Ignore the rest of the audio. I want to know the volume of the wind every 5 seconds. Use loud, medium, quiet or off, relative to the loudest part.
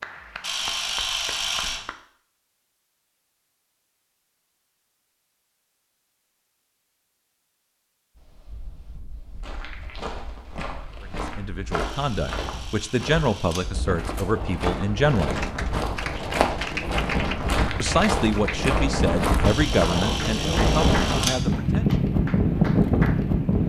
off, quiet, quiet, medium, loud.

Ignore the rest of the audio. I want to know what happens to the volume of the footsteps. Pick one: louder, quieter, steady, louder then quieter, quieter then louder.
louder.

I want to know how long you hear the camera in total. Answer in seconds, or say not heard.
5 s.